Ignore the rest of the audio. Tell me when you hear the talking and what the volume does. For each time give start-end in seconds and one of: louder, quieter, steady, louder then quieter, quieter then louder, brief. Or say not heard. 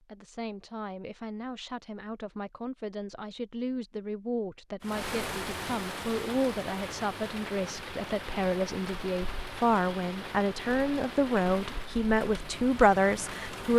0.0-13.7 louder.